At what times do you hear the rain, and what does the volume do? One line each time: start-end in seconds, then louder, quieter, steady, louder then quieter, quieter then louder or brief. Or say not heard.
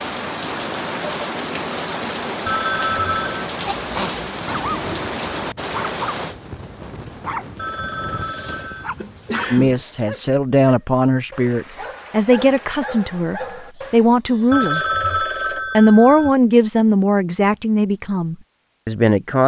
0.0-10.2 quieter.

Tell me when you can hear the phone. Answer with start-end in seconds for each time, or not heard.
2.5-3.5, 7.5-8.9, 14.5-16.3.